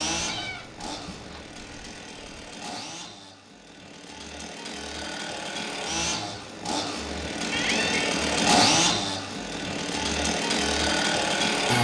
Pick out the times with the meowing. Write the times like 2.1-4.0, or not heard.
0.1-2.4, 7.5-8.2.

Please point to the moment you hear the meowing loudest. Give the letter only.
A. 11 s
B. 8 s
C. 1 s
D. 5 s
B.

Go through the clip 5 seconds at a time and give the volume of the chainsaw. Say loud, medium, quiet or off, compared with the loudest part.
quiet, loud, loud.